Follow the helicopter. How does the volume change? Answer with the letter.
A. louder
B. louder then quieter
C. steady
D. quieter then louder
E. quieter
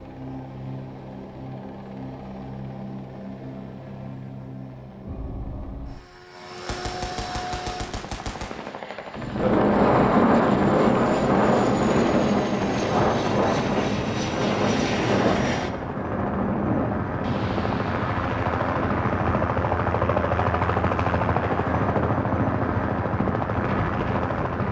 A.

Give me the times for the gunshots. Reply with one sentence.
You can hear the gunshots from 6.5 to 8.8 s and from 17.2 to 18.8 s.